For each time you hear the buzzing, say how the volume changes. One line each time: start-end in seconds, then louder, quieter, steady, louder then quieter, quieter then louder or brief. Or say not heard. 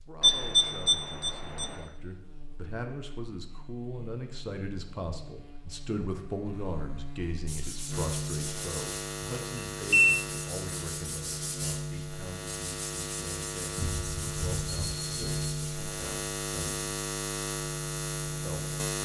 0.0-19.0 louder.